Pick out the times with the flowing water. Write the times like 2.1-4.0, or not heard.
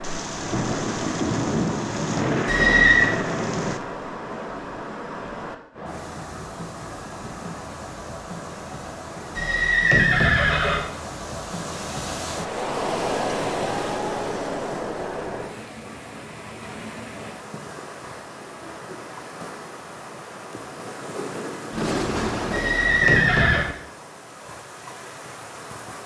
0.0-26.0.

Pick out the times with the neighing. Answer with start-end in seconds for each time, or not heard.
2.5-3.1, 9.3-10.8, 22.5-23.6.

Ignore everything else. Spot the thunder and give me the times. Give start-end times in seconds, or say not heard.
0.0-3.8, 21.7-23.8.